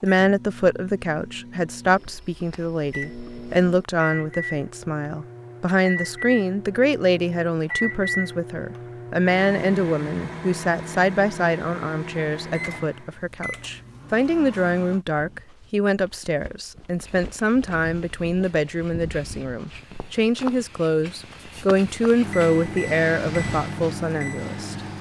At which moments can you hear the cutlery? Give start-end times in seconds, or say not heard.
not heard.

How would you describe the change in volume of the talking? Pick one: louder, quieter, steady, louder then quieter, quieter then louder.
steady.